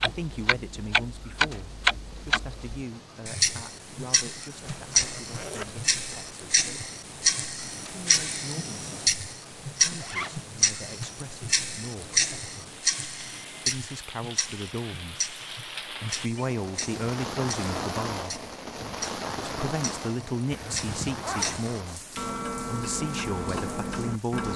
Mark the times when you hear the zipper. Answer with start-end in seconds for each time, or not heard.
4.7-6.3, 10.0-10.5, 20.5-21.6.